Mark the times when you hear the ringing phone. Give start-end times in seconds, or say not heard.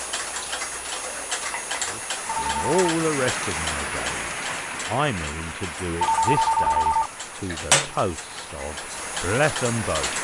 2.2-2.7, 6.0-7.1.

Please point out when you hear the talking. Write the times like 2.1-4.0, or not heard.
1.9-10.1.